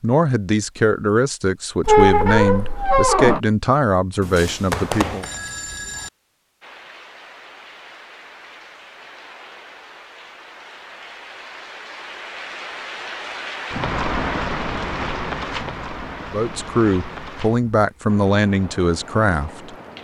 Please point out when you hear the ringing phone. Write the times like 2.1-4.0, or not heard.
4.2-6.1.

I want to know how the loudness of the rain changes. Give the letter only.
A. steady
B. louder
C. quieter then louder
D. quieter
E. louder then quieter
E.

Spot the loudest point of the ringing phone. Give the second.
5 s.